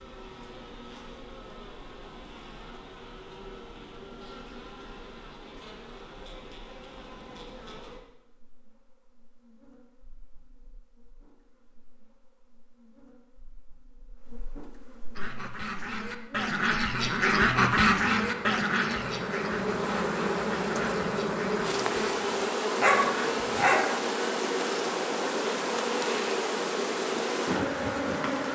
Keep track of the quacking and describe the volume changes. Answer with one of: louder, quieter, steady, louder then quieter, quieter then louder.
louder then quieter.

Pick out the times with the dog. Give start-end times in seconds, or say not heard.
22.8-23.9.